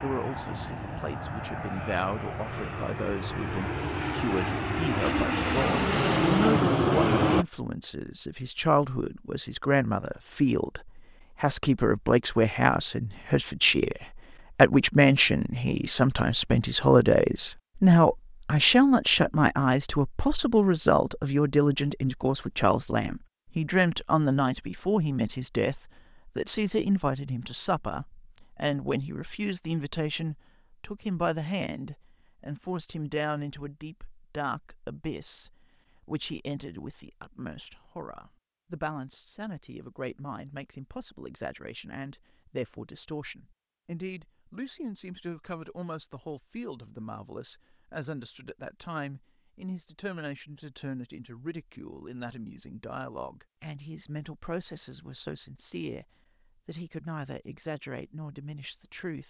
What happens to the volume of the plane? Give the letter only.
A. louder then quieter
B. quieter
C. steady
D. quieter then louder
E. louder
E.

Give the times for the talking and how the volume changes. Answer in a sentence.
You can hear the talking from 0.0 to 59.2 s, getting louder then quieter.